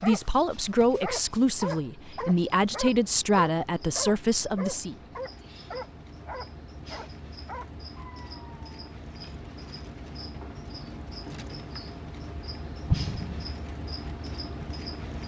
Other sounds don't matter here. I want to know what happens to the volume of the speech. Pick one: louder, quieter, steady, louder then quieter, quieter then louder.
steady.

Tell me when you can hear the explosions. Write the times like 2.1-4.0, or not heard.
12.8-13.6.